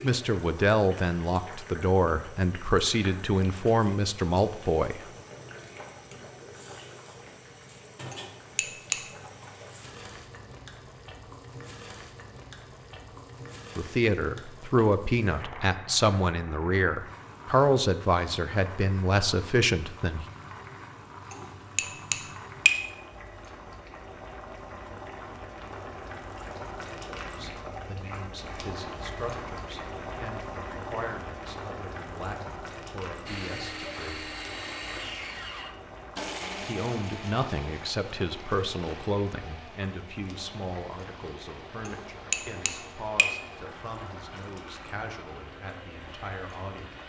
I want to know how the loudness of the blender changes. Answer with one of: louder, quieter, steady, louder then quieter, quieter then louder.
quieter.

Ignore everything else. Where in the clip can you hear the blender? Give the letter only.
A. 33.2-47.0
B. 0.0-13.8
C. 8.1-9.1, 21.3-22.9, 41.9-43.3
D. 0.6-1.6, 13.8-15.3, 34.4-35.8
A.